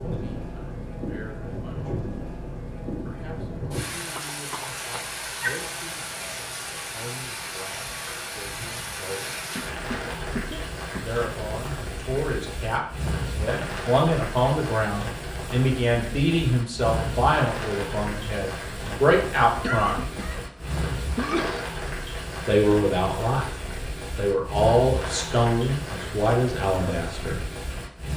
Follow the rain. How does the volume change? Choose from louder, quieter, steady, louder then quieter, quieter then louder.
steady.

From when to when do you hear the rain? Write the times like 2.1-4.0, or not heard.
0.0-28.1.